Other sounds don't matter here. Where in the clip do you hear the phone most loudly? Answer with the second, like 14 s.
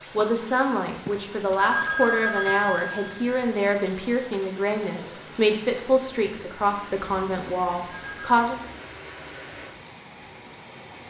2 s.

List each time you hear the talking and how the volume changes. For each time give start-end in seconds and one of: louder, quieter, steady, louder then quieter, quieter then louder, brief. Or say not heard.
0.1-8.6 steady.